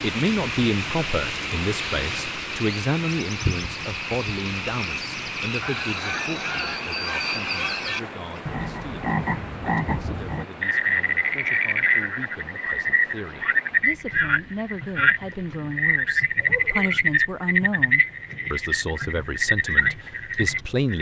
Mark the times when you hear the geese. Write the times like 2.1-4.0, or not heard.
5.6-8.1.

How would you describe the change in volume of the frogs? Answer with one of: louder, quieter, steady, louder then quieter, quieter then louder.
louder.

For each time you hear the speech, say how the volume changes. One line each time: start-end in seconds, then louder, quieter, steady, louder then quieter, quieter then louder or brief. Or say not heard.
0.0-20.9 quieter then louder.